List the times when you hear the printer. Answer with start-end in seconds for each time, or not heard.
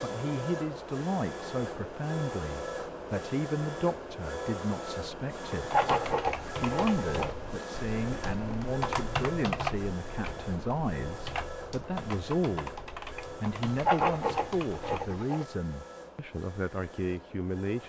0.0-17.8.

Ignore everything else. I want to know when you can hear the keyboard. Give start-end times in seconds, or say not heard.
5.7-15.2.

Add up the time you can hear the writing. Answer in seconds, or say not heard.
4 s.